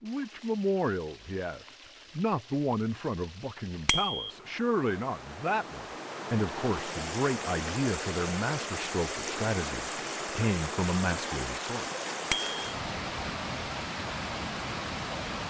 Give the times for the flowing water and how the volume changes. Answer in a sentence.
The flowing water can be heard from 0.0 to 15.4 s, getting louder.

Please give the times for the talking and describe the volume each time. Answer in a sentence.
You can hear the talking from 0.0 to 11.8 s, at a steady volume.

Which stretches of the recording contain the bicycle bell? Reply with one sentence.
The bicycle bell can be heard from 3.9 to 4.3 s and from 12.3 to 12.8 s.